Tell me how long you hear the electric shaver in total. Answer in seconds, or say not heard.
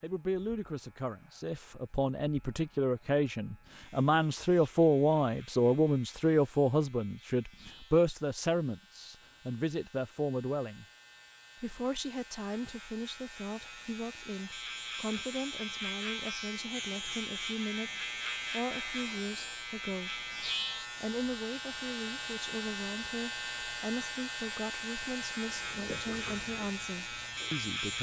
28 s.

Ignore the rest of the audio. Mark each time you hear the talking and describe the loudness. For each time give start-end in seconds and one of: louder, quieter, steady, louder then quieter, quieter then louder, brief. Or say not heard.
0.0-10.8 louder then quieter
11.6-20.2 steady
21.0-27.9 steady.